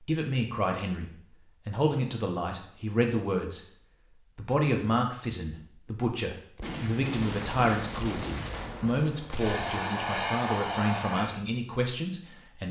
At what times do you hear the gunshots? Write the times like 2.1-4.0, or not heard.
6.5-9.9.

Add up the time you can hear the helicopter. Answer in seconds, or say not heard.
2 s.